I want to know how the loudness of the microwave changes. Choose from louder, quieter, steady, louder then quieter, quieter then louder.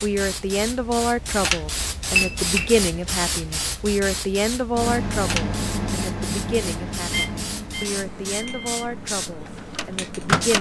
quieter.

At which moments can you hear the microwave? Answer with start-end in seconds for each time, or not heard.
4.7-10.5.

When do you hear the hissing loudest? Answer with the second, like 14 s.
2 s.